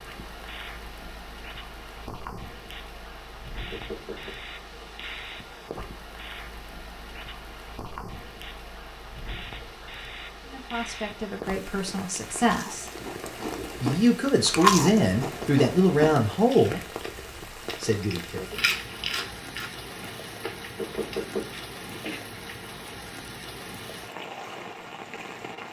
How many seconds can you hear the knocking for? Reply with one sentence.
You can hear the knocking for 2 seconds altogether.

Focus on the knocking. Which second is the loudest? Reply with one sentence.
The volume of the knocking peaks at 21 seconds.